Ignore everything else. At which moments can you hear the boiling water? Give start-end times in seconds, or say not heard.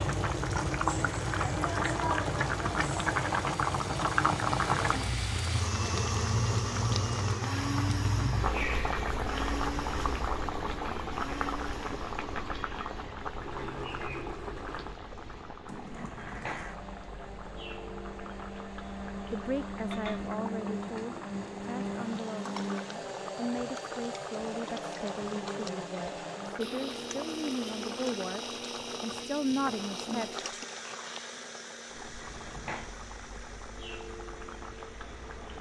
0.0-35.5.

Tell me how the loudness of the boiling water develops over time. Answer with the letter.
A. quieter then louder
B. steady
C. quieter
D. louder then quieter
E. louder
C.